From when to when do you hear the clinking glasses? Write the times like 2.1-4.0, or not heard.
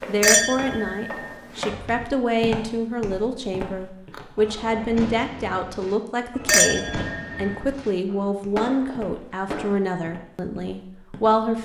0.2-2.0, 6.5-7.6.